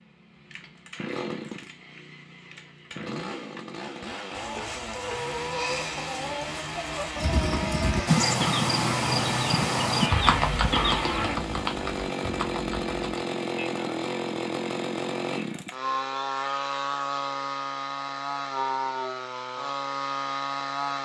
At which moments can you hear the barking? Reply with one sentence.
The barking can't be heard in this clip.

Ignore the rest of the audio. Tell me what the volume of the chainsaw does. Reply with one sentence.
The loudness of the chainsaw goes up.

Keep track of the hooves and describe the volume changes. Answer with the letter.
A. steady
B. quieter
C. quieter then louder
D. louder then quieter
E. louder
B.